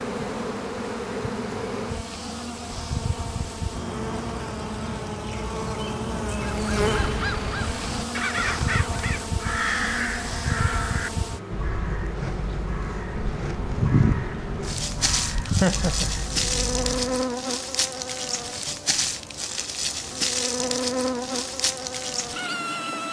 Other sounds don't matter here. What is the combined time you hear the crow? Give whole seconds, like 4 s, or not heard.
11 s.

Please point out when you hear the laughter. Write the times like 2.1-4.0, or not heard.
15.4-16.1.